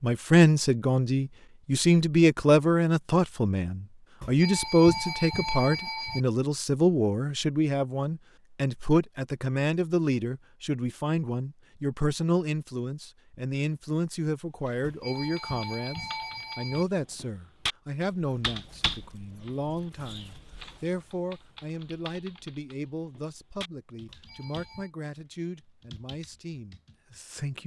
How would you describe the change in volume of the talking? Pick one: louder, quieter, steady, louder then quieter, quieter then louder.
quieter.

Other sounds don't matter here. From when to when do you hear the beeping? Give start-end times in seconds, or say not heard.
4.2-6.2, 14.8-16.9, 24.1-24.9.